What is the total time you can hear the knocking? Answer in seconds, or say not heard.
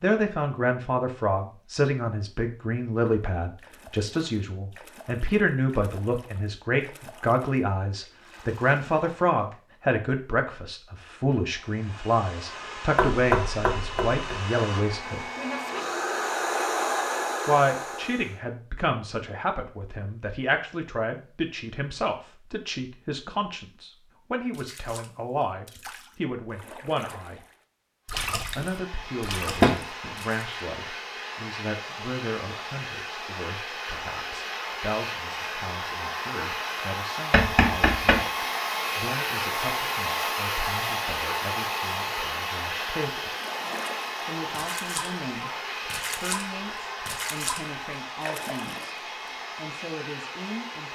3 s.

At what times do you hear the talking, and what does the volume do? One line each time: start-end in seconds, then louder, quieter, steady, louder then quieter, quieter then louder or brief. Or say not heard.
0.0-15.3 steady
17.4-27.4 steady
28.6-43.4 quieter
44.2-45.5 brief
46.1-49.0 brief
49.5-50.9 brief.